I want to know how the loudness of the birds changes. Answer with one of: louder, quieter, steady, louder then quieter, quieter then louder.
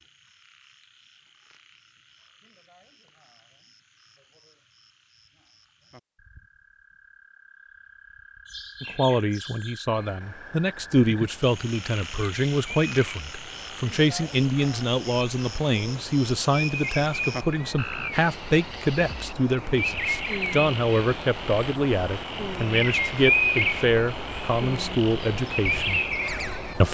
louder.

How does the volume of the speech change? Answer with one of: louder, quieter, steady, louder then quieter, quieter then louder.
steady.